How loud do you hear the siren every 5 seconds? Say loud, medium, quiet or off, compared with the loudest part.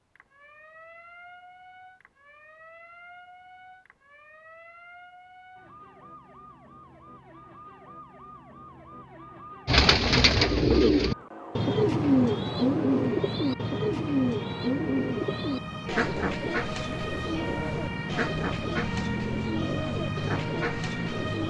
quiet, quiet, medium, loud, loud.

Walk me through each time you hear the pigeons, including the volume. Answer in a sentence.
You can hear the pigeons from 9.7 to 21.4 s, getting quieter.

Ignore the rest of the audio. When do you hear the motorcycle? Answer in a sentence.
The motorcycle can't be heard in this clip.